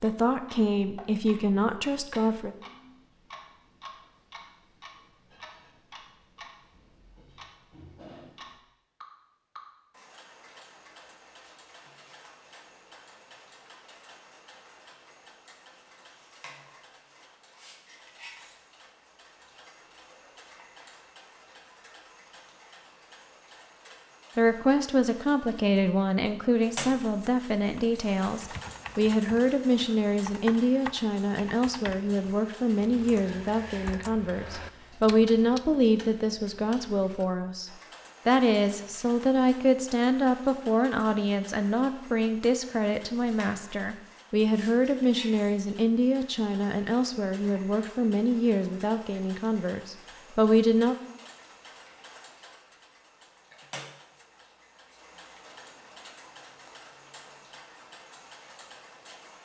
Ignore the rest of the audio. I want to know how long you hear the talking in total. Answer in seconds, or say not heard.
29 s.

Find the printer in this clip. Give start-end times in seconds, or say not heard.
not heard.